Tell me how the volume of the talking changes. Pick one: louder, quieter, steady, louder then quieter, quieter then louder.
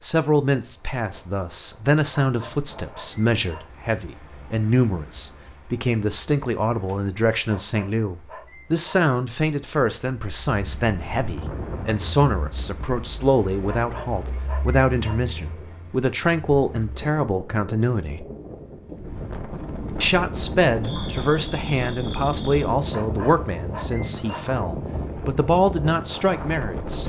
steady.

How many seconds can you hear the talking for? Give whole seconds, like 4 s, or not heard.
25 s.